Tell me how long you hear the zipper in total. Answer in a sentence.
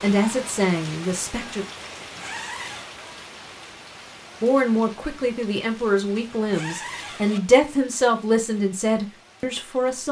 The zipper can be heard for 2 seconds in total.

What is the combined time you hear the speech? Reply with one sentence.
You can hear the speech for 7 seconds altogether.